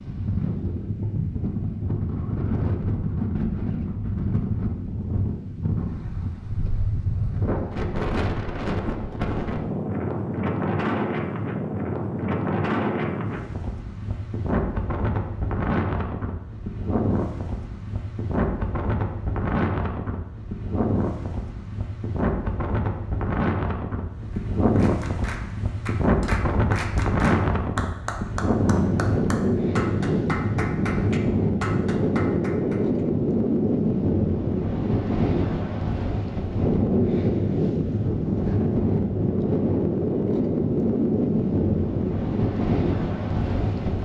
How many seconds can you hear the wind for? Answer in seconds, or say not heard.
44 s.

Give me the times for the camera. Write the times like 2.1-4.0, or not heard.
not heard.